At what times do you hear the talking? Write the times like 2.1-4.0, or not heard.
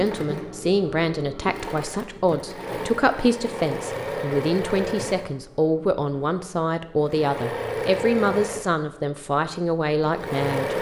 0.0-10.7.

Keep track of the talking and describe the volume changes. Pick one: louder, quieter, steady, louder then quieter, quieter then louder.
steady.